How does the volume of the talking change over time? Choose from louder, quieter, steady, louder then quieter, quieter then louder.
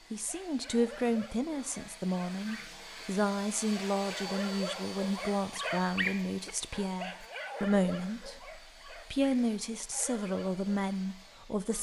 steady.